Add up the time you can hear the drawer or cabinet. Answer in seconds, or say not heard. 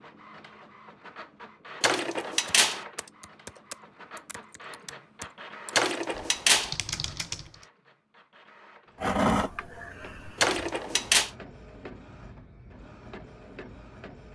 3 s.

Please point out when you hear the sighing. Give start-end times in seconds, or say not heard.
9.0-10.4.